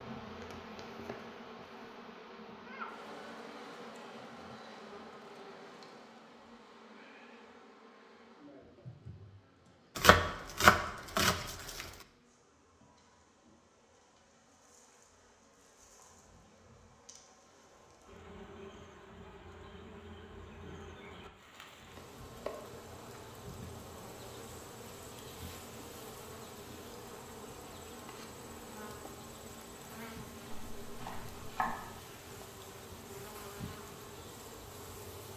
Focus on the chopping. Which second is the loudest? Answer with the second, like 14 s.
11 s.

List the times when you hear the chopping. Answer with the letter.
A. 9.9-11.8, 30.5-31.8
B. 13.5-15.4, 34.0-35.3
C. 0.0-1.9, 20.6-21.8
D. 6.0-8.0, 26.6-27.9
A.